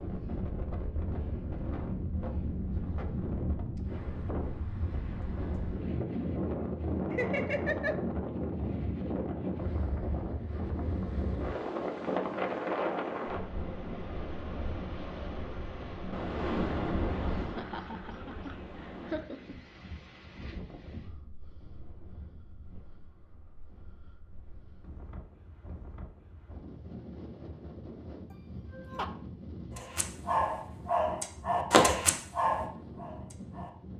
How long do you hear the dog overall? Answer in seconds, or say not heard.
4 s.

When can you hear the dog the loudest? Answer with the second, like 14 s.
32 s.